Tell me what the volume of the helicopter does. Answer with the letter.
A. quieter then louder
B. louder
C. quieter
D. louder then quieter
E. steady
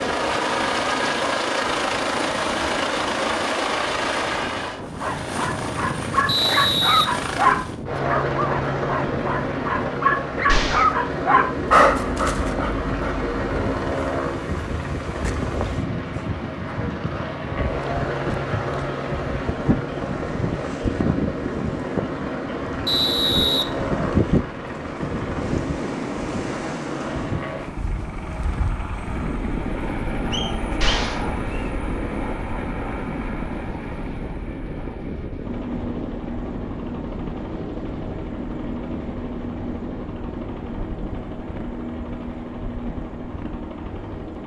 C.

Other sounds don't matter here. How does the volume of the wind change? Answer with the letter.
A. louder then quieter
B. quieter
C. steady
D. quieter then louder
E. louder
A.